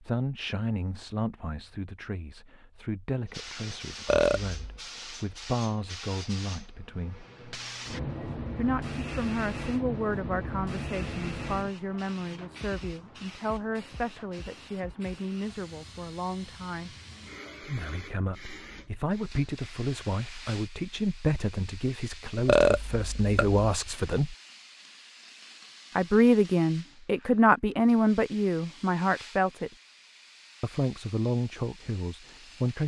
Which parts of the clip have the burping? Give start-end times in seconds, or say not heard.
4.0-4.8, 22.4-23.6.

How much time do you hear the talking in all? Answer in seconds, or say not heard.
28 s.